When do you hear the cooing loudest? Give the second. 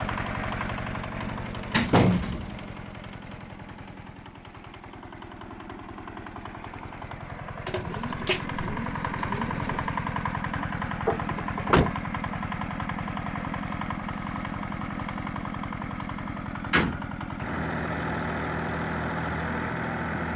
8 s.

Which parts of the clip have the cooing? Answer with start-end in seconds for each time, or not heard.
7.7-9.9.